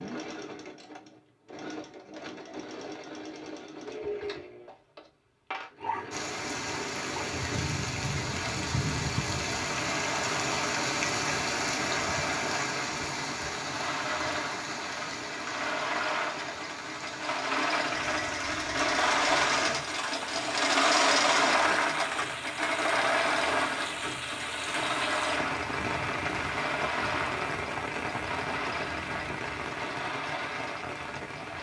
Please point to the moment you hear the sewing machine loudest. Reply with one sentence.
The loudest moment of the sewing machine is at 21 seconds.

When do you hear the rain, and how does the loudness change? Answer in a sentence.
The rain can be heard from 6.1 to 31.5 s, getting quieter then louder.